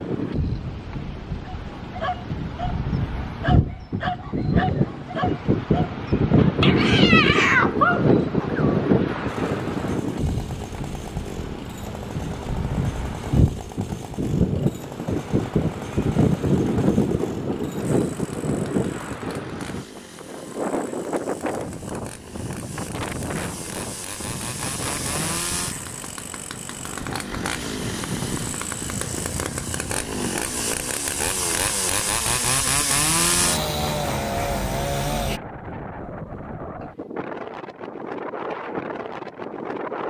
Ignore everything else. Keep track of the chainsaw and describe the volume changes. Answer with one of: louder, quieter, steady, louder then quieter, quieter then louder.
louder.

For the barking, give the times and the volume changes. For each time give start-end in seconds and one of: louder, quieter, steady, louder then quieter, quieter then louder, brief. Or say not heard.
1.4-8.7 louder.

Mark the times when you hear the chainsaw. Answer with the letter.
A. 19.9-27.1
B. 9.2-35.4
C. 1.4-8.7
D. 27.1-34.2
B.